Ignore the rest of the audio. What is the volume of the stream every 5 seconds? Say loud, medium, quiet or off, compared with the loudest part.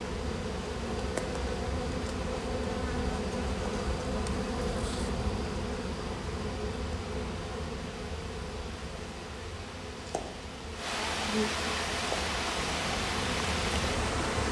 quiet, quiet, loud.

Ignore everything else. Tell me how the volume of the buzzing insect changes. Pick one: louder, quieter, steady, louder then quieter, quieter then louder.
quieter then louder.